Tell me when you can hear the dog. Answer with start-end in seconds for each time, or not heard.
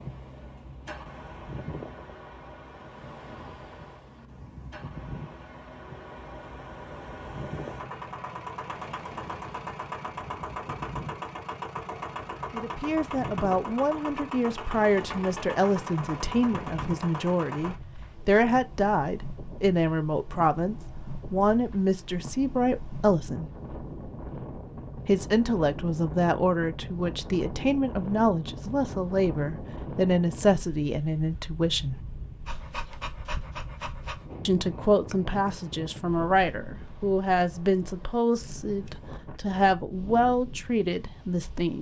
32.5-34.2.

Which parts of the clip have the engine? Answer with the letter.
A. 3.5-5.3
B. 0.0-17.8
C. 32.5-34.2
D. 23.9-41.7
B.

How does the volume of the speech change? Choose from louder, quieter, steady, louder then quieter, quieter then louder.
steady.